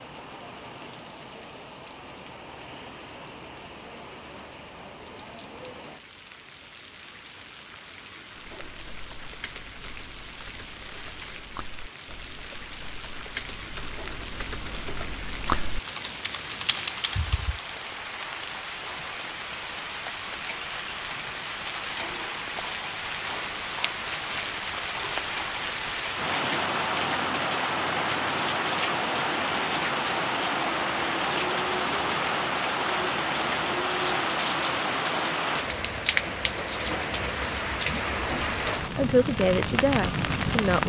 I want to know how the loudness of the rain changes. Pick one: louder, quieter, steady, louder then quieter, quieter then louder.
louder.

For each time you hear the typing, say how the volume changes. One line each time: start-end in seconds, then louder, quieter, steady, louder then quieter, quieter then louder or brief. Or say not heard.
8.4-17.6 louder.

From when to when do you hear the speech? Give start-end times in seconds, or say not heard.
38.8-40.8.